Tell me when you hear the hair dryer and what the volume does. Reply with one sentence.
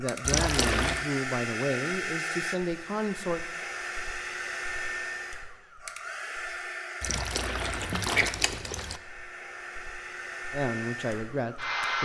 You can hear the hair dryer from 0.0 to 12.0 s, getting quieter.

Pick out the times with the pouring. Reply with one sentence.
The pouring can be heard from 0.2 to 1.1 s and from 7.0 to 9.0 s.